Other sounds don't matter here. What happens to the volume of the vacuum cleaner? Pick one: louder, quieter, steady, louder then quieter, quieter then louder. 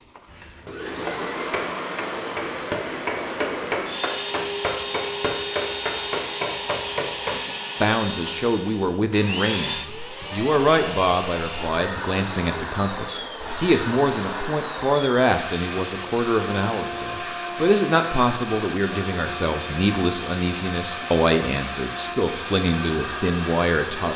steady.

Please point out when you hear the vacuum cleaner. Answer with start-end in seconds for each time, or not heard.
0.0-24.1.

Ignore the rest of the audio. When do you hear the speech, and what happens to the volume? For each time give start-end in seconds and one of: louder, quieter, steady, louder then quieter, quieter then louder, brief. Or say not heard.
7.8-24.1 steady.